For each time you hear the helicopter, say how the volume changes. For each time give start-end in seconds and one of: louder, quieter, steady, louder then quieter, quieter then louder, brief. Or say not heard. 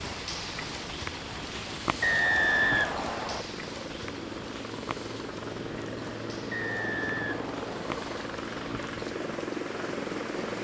0.0-10.5 louder.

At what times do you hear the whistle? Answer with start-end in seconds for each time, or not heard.
2.0-3.4, 6.5-8.2.